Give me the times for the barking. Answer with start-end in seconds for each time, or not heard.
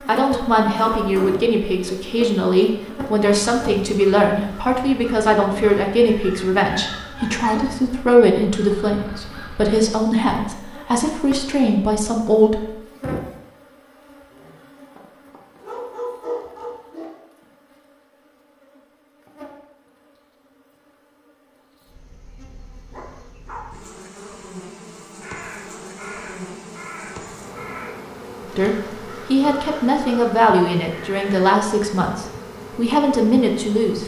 6.0-7.5, 15.6-17.1, 22.9-23.7.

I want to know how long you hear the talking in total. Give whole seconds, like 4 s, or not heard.
18 s.